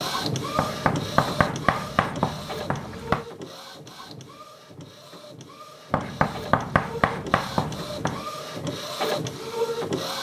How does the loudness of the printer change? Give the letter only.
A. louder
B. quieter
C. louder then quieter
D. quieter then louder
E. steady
D.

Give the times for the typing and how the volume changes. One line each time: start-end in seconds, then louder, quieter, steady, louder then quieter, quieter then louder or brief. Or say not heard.
not heard.